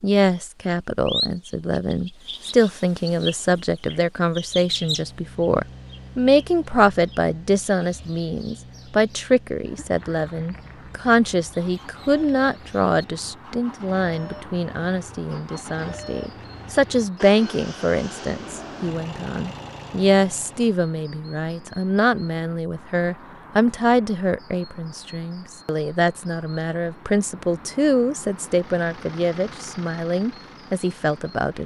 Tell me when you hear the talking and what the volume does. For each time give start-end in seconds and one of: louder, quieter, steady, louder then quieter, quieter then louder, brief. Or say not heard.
0.0-31.6 steady.